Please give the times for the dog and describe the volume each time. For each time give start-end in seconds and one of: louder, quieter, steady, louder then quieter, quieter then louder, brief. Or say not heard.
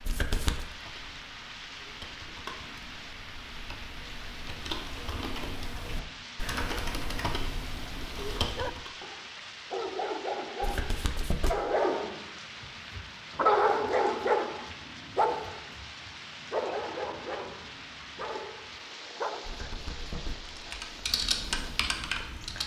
8.4-19.8 louder then quieter.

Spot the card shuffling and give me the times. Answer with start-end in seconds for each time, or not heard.
0.0-0.7, 10.6-11.6, 19.4-20.7.